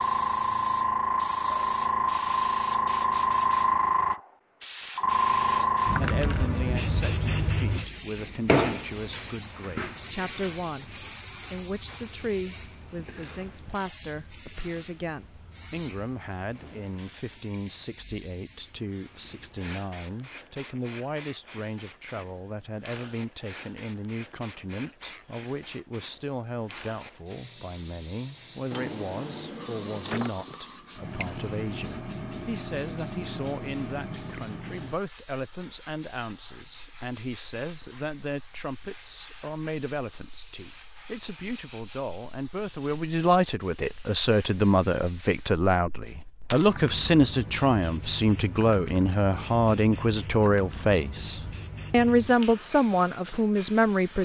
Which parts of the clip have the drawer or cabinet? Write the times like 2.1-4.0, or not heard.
28.7-30.6.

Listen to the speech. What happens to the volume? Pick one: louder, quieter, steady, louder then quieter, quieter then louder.
louder.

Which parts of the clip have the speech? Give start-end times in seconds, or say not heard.
6.0-54.2.